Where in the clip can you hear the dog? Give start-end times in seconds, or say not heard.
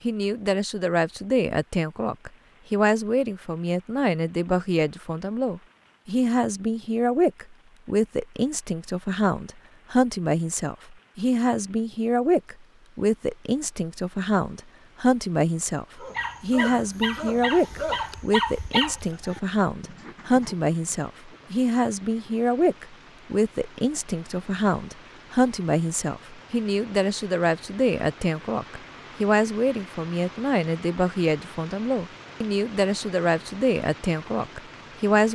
16.0-21.5.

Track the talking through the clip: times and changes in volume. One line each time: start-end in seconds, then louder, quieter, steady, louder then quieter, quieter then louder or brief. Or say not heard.
0.0-35.3 steady.